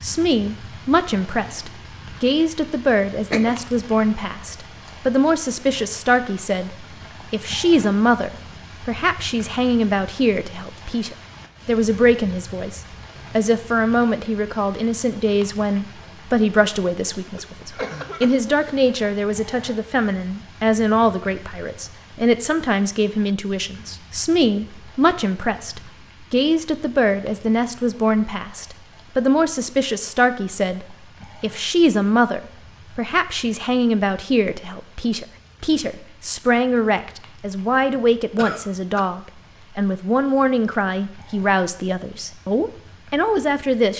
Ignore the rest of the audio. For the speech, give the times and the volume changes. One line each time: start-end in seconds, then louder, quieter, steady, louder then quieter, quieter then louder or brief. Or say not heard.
0.0-43.9 steady.